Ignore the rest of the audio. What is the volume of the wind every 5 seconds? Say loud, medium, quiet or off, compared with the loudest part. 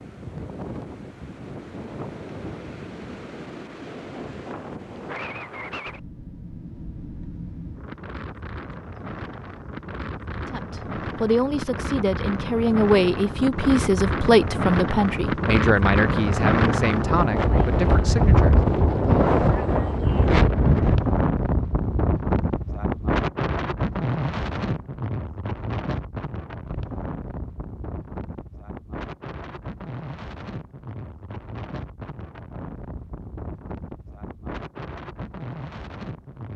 quiet, quiet, medium, loud, loud, quiet, quiet, quiet.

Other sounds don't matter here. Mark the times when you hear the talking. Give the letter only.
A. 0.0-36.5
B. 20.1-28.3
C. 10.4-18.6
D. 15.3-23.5
C.